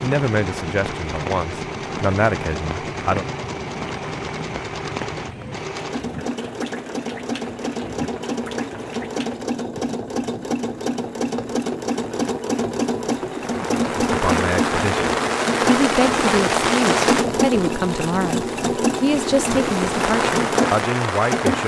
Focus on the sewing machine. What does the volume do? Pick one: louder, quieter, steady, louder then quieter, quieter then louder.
louder.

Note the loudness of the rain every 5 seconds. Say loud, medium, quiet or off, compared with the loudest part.
medium, quiet, medium, loud, loud.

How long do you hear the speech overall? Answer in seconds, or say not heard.
11 s.